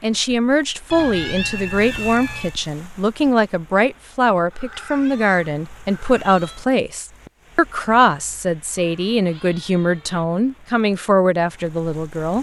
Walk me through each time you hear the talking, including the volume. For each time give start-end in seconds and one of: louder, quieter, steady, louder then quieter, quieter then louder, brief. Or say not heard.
0.0-12.3 steady.